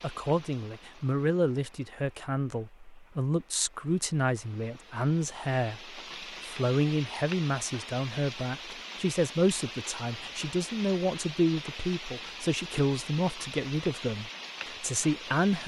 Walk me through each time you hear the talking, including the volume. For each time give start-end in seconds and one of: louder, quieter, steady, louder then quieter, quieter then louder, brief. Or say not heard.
0.0-15.6 steady.